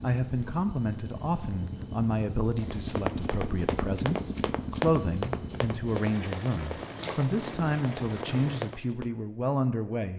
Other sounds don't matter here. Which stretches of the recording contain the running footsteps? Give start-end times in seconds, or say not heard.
2.5-9.1.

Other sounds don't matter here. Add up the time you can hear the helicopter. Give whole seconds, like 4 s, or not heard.
9 s.